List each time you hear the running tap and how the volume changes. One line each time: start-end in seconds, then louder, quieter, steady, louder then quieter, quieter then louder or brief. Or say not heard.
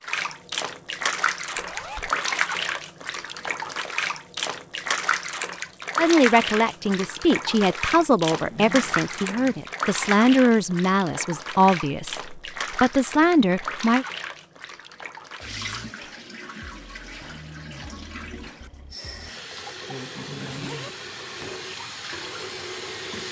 0.0-23.2 quieter.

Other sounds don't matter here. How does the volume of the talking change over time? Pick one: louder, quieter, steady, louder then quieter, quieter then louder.
steady.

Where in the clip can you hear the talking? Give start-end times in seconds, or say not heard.
6.0-14.1.